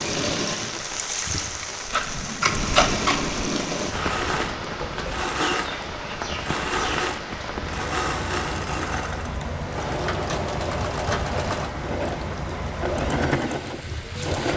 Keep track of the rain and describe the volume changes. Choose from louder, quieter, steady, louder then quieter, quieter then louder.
steady.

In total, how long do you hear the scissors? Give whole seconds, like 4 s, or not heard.
2 s.